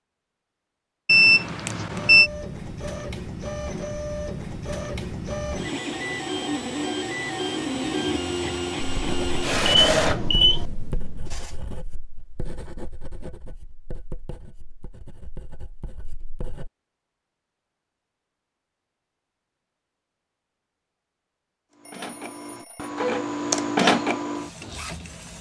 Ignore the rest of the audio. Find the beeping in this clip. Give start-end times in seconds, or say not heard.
1.1-2.3, 9.6-10.7, 21.8-22.9.